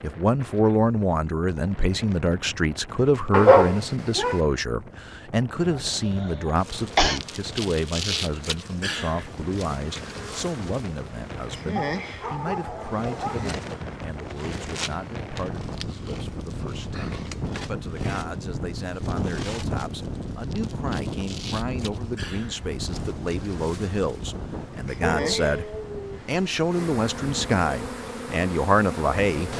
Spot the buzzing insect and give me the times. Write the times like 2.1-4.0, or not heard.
6.5-29.5.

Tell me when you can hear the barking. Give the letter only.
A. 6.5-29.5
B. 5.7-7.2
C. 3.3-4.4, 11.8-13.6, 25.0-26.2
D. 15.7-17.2
C.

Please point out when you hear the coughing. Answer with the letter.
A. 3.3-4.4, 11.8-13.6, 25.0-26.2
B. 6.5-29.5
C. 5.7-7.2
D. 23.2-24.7
C.